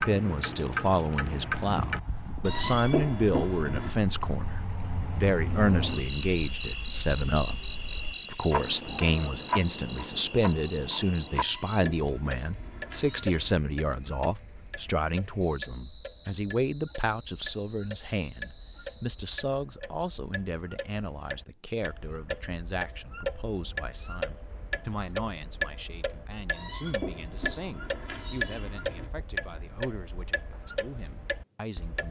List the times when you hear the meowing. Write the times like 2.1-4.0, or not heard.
2.5-4.0, 11.3-13.6, 26.5-29.1.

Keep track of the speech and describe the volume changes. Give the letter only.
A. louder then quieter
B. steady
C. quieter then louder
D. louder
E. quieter
E.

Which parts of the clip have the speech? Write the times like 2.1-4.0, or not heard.
0.0-32.0.